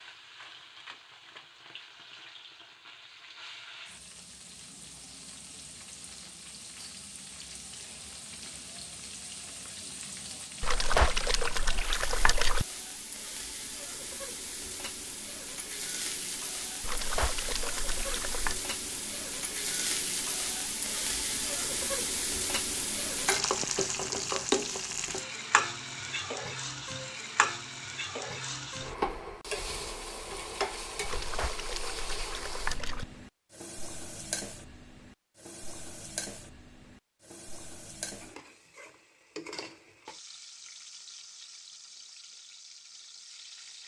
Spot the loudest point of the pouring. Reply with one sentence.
The volume of the pouring peaks at 11 seconds.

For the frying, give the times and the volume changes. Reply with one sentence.
The frying can be heard from 0.0 to 43.8 s, getting louder then quieter.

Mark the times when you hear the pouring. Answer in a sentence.
The pouring can be heard from 10.6 to 12.7 s, from 16.8 to 18.6 s and from 31.1 to 33.0 s.